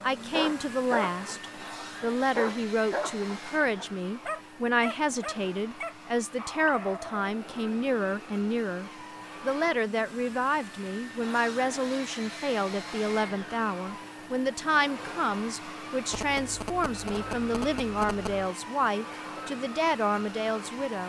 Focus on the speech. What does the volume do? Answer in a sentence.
The loudness of the speech stays about the same.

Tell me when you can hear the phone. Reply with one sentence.
The phone can be heard from 16.1 to 18.5 s.